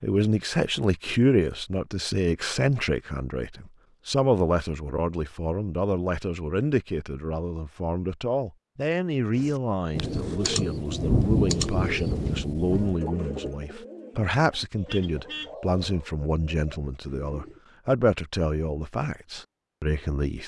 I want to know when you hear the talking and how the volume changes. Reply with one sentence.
The talking can be heard from 0.0 to 20.4 s, at a steady volume.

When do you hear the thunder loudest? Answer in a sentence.
The loudest moment of the thunder is at 11 seconds.